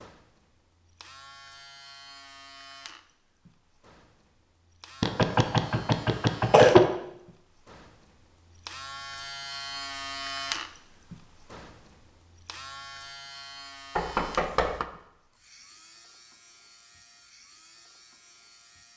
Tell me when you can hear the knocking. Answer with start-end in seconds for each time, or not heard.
5.0-7.0, 13.9-14.8.